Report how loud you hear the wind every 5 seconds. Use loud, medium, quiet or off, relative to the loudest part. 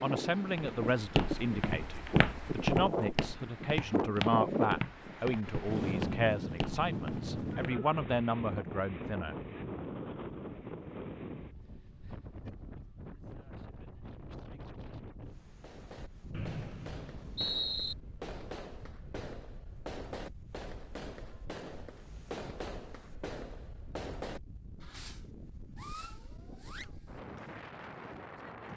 loud, loud, medium, quiet, quiet, quiet.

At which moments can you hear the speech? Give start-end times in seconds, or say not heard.
0.0-9.3.